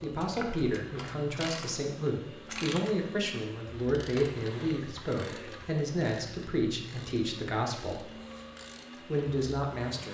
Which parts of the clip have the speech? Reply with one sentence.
You can hear the speech from 0.0 to 8.1 s and from 8.9 to 10.0 s.